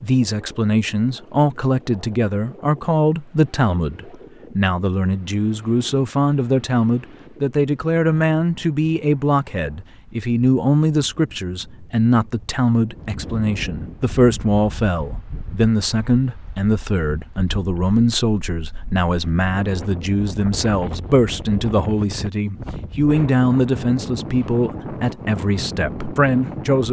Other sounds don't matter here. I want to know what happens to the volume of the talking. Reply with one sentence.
The volume of the talking stays about the same.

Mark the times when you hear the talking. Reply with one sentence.
The talking can be heard from 0.0 to 26.8 s.